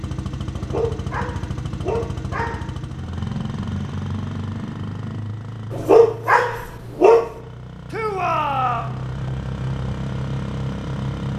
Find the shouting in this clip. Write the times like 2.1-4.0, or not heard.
7.9-9.0.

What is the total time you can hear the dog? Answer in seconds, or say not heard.
4 s.